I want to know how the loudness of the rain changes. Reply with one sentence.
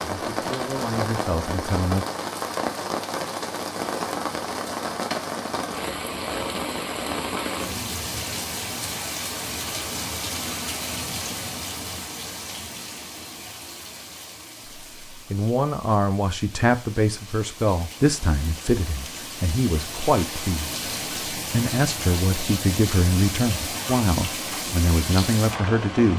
The loudness of the rain goes down, then up.